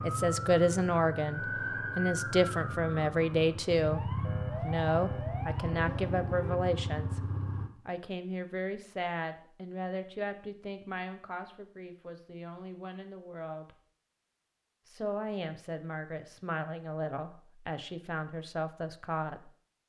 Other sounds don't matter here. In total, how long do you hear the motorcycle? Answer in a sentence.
You can hear the motorcycle for 8 seconds altogether.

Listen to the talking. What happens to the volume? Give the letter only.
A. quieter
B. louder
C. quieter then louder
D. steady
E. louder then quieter
A.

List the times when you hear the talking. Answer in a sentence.
You can hear the talking from 0.0 to 7.2 s, from 7.8 to 13.8 s and from 14.8 to 19.5 s.